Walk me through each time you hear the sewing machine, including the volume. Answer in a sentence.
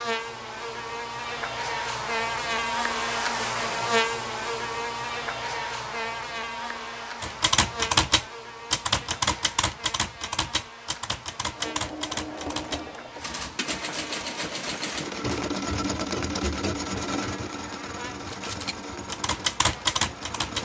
You can hear the sewing machine from 11.6 to 20.6 s, getting louder then quieter.